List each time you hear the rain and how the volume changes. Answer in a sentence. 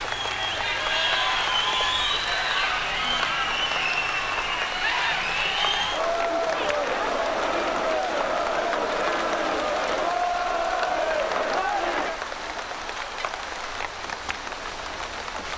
The rain can be heard from 0.0 to 15.5 s, at a steady volume.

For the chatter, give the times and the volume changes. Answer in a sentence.
You can hear the chatter from 0.0 to 15.5 s, getting quieter.